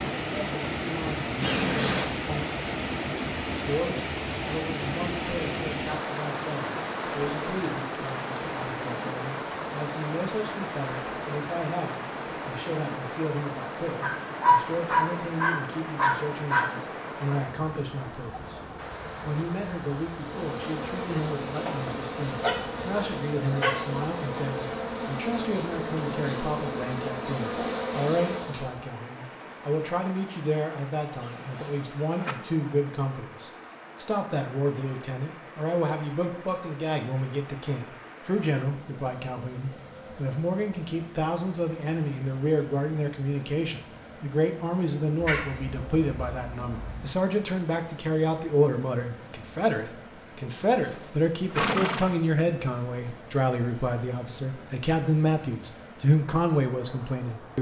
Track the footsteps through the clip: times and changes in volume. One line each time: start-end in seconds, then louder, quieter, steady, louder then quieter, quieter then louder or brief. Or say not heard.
not heard.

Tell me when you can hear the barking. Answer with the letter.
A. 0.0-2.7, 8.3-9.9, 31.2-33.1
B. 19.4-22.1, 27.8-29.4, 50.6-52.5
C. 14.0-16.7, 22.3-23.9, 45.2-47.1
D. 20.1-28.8
C.